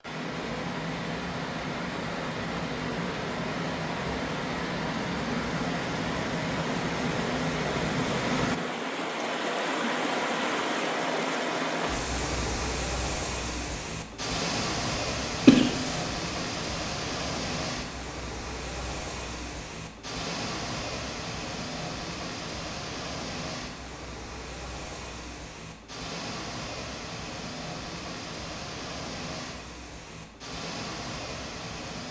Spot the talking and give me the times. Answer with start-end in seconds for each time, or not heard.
not heard.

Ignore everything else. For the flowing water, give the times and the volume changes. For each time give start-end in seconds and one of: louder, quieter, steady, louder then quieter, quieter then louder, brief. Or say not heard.
0.0-32.0 quieter.